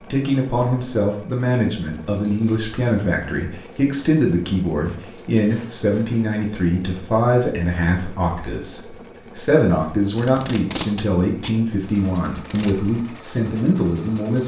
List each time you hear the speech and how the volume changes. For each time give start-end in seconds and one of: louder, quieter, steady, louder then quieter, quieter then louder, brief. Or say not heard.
0.1-14.4 steady.